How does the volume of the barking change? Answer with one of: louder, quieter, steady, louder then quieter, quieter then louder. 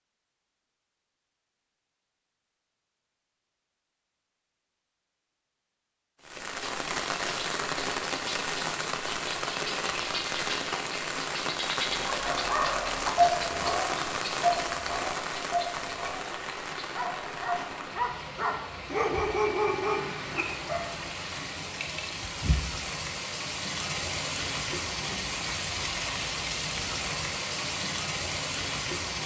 quieter then louder.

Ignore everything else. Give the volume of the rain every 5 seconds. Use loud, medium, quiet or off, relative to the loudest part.
off, loud, loud, medium, loud, loud.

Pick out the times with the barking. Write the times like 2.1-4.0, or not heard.
12.0-20.9.